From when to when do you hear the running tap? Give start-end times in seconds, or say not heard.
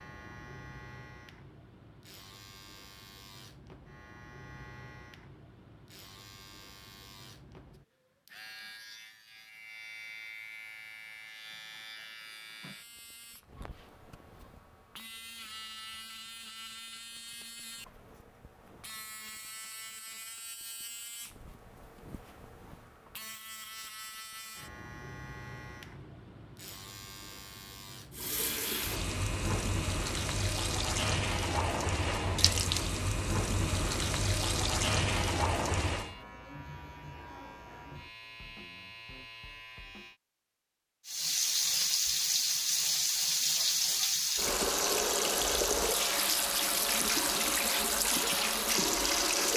28.1-36.1, 41.0-49.5.